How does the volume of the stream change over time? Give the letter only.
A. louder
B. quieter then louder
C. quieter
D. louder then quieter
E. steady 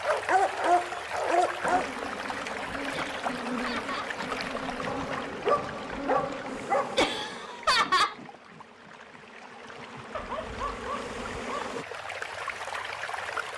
B.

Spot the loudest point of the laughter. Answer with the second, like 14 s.
8 s.